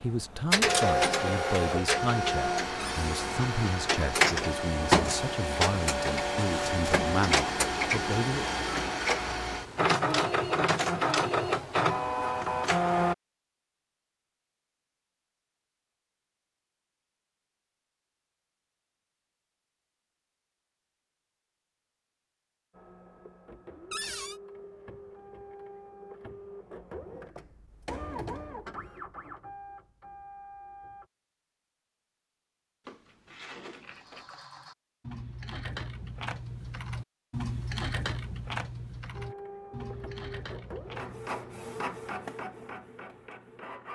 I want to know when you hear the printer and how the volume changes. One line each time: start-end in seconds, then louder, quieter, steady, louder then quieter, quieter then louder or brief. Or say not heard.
0.0-13.2 steady
22.7-31.1 louder then quieter
39.1-43.9 louder then quieter.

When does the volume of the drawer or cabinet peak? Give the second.
24 s.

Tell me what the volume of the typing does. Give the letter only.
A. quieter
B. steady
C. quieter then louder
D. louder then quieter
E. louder
D.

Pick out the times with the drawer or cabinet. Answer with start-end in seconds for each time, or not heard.
2.8-3.2, 23.9-24.4, 32.9-34.2.